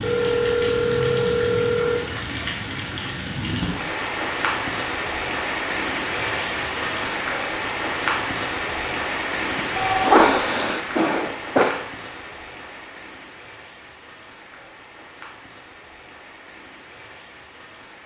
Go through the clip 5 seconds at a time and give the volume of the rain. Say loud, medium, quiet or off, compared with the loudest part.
loud, loud, medium, quiet.